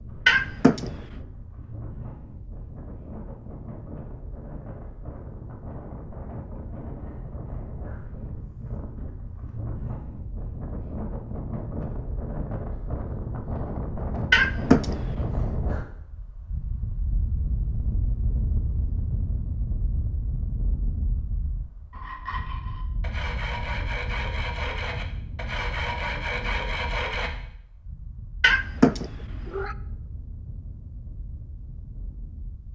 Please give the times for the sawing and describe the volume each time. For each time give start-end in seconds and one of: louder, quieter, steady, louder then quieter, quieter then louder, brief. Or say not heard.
21.9-27.3 louder.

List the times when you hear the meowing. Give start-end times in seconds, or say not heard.
0.2-0.9, 14.3-14.9, 28.4-29.8.